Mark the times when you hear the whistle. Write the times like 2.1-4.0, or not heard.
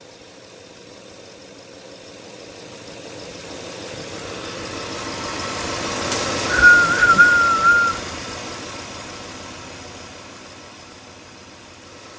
6.1-8.0.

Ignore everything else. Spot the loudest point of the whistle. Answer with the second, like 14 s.
7 s.